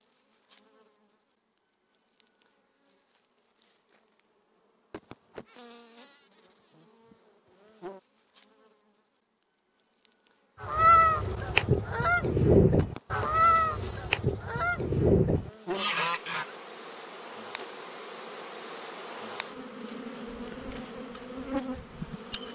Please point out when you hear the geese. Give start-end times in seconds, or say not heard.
10.6-16.5.